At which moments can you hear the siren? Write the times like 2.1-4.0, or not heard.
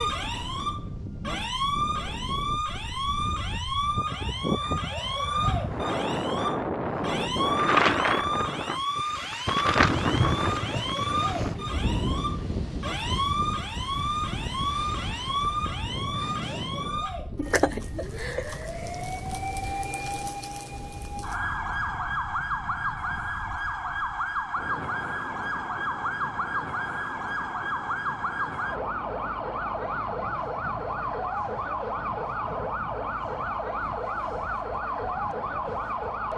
0.0-36.3.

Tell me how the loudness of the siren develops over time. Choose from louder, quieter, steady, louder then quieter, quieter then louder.
steady.